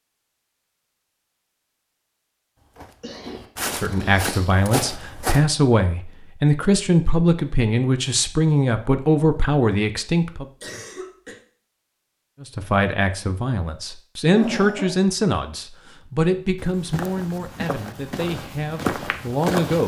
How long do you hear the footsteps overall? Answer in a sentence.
You can hear the footsteps for 6 seconds altogether.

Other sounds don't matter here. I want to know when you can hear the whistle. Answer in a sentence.
You can't hear the whistle here.